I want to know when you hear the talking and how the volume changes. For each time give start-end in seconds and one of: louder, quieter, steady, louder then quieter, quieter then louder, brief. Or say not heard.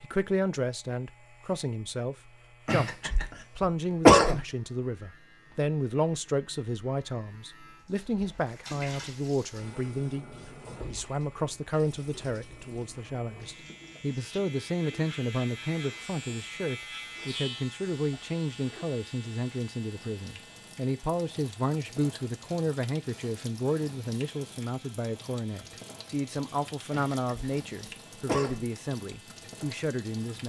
0.0-30.4 steady.